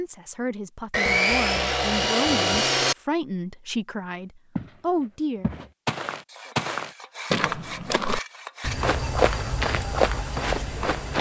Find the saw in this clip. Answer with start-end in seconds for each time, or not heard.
0.9-3.0, 6.2-8.9.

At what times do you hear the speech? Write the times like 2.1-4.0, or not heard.
0.0-5.5.